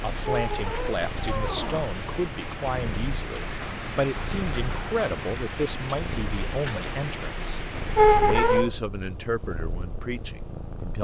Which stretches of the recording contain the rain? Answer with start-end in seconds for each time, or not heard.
0.0-8.7.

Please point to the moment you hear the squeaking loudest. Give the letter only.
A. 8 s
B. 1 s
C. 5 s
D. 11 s
A.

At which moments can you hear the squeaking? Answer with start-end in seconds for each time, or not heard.
0.2-1.9, 8.0-8.8.